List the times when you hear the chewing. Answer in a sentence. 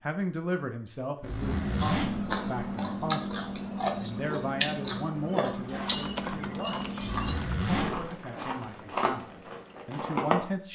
The chewing can be heard from 1.4 to 10.4 s.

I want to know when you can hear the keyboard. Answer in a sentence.
The keyboard can be heard from 5.7 to 9.1 s.